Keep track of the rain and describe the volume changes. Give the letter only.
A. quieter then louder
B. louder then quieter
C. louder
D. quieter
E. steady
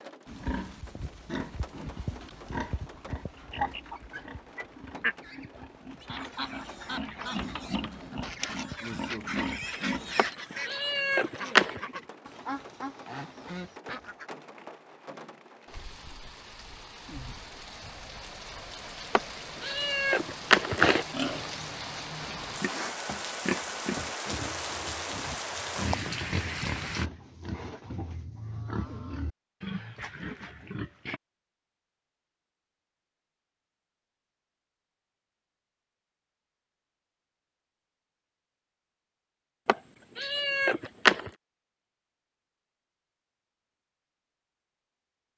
C.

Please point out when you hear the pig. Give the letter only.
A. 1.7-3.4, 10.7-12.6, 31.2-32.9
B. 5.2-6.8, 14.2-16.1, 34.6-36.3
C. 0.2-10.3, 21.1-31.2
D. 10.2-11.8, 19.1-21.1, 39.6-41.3
C.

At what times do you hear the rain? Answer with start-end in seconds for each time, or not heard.
0.0-27.1.